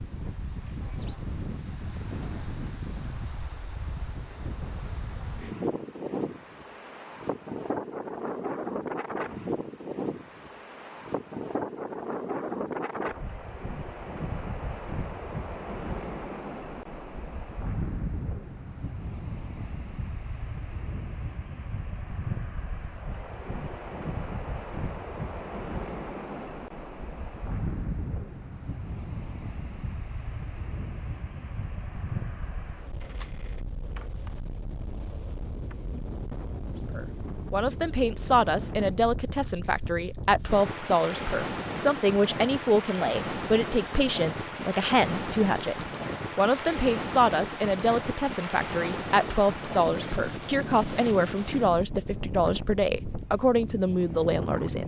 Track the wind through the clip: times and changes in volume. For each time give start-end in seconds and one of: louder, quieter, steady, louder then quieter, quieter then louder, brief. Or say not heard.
0.0-54.8 steady.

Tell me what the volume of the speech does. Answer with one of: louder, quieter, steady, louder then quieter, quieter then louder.
steady.